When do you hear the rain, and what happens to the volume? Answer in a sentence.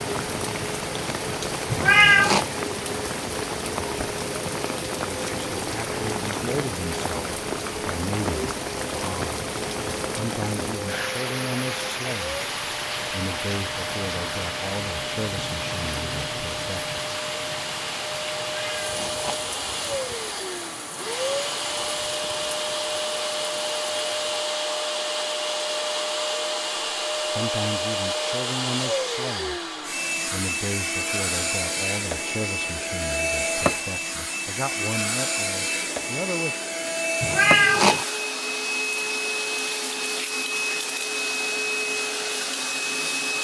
The rain can be heard from 0.0 to 24.6 s, getting quieter.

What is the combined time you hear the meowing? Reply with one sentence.
You can hear the meowing for 3 seconds altogether.